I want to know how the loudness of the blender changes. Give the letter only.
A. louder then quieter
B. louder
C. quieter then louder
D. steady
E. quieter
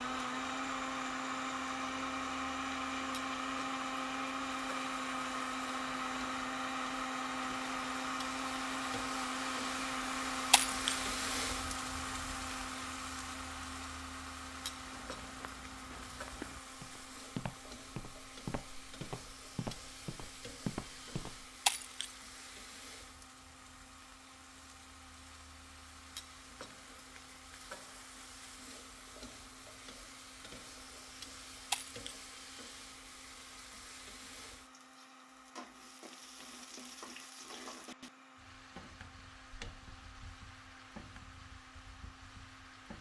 E.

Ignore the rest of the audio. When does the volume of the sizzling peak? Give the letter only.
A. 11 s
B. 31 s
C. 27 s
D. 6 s
A.